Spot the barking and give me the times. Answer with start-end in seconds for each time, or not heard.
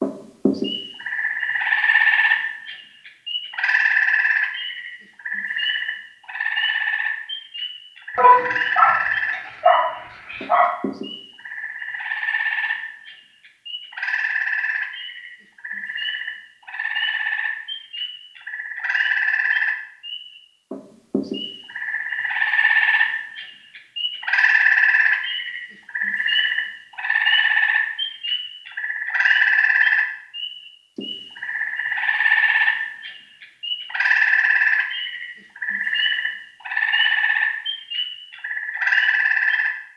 8.2-10.7.